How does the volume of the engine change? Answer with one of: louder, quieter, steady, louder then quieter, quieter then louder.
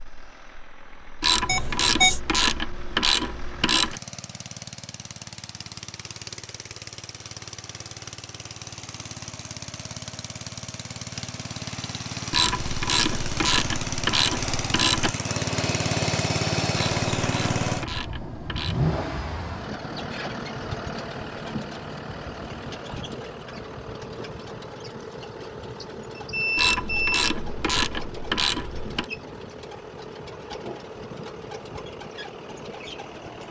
louder then quieter.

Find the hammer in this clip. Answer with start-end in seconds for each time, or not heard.
not heard.